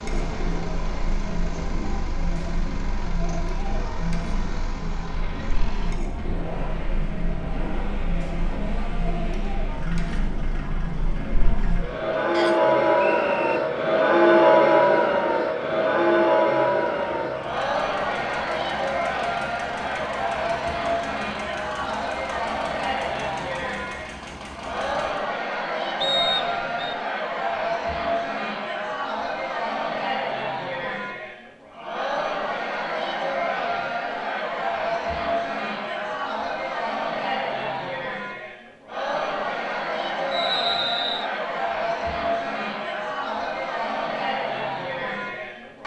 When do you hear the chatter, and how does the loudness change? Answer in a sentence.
The chatter can be heard from 0.0 to 45.8 s, getting louder then quieter.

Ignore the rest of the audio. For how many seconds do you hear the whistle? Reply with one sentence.
You can hear the whistle for 3 seconds altogether.